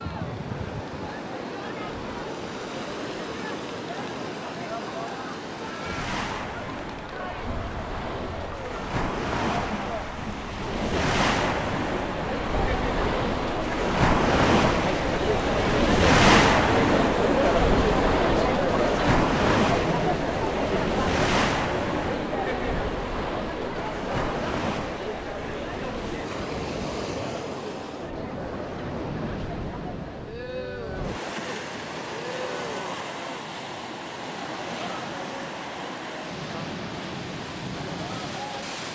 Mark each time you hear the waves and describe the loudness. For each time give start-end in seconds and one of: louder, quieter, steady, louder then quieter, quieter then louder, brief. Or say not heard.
0.0-38.9 louder then quieter.